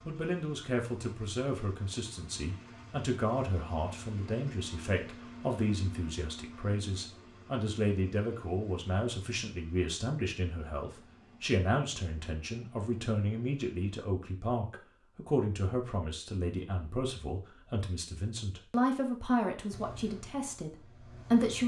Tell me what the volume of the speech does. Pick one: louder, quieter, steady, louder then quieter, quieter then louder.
steady.